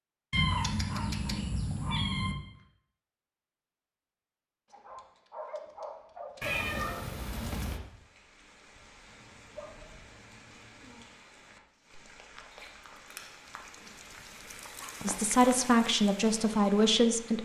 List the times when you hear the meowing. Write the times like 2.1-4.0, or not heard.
0.3-2.4, 6.4-7.8, 12.6-13.3.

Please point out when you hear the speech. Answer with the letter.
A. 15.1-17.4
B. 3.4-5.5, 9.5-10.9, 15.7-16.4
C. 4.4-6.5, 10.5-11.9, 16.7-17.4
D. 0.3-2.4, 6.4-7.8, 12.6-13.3
A.